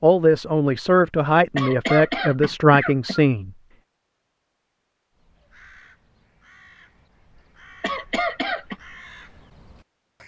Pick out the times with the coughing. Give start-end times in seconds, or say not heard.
1.6-3.2, 7.8-8.8.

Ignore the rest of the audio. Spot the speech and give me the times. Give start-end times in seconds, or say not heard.
0.0-3.5.